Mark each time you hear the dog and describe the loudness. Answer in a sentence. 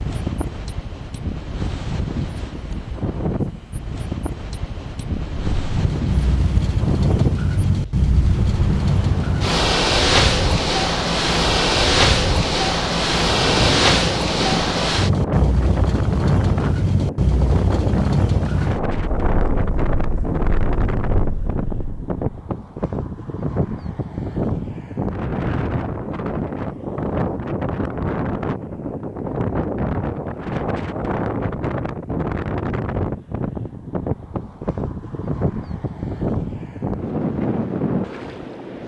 You can't hear the dog here.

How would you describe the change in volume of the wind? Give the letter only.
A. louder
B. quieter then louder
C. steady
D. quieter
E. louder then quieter
C.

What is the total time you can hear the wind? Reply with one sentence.
You can hear the wind for 39 seconds altogether.